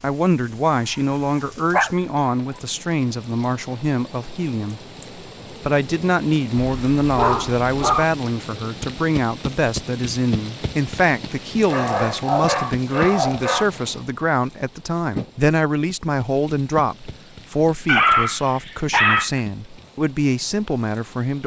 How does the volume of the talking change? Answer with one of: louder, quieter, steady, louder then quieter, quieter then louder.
steady.